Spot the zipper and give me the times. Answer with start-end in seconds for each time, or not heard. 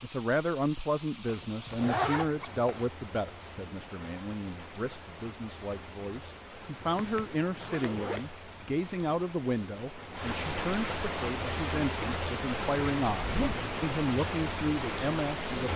1.2-2.9, 7.0-8.3, 13.2-13.7.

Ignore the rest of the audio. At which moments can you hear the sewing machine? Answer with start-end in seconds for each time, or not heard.
not heard.